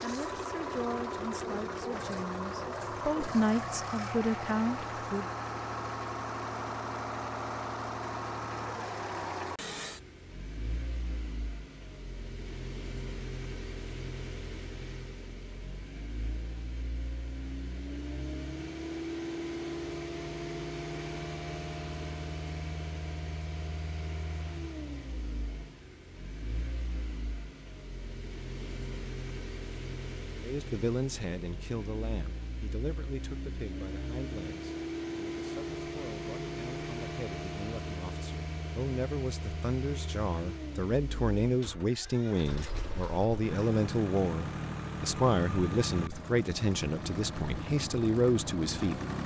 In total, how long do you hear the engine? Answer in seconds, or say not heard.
49 s.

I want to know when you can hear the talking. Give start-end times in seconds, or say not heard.
0.0-5.2, 30.4-49.0.